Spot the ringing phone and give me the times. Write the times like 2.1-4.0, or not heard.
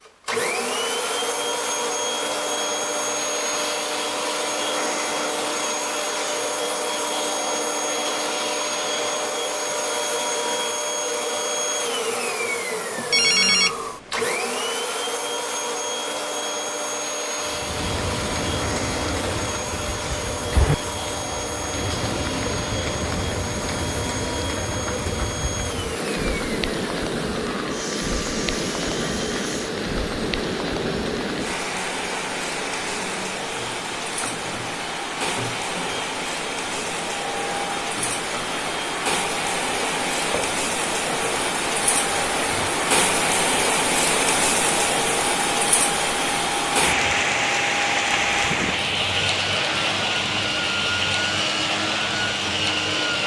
13.1-14.2.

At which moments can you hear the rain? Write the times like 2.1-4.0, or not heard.
17.4-53.2.